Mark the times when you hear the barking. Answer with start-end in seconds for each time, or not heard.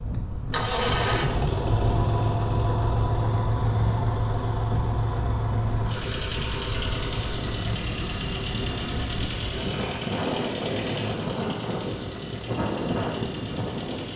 not heard.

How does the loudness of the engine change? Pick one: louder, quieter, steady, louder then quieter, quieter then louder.
quieter.